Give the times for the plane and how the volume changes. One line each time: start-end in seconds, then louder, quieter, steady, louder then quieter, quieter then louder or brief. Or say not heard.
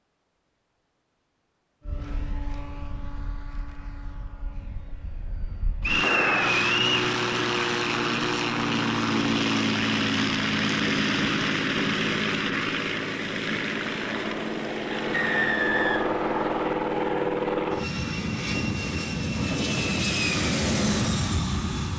1.9-21.9 louder.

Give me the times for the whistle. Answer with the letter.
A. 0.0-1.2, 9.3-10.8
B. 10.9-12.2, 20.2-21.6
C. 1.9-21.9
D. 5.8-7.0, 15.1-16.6
D.